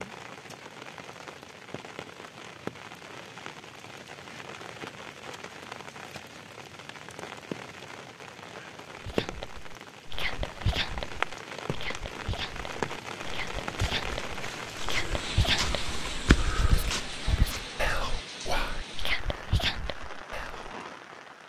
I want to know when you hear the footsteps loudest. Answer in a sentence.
The volume of the footsteps peaks at 16 seconds.